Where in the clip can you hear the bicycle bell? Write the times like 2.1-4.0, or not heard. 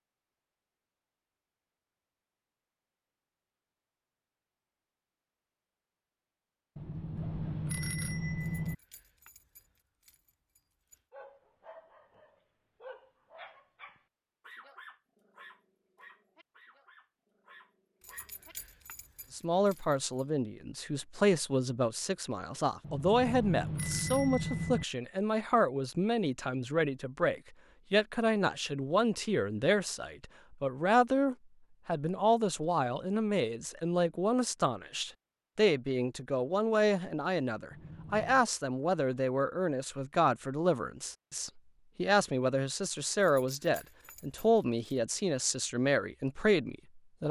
6.8-8.8, 22.8-24.9, 37.7-38.5.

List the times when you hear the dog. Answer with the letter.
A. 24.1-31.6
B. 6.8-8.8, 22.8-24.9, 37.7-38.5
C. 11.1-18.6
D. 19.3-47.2
C.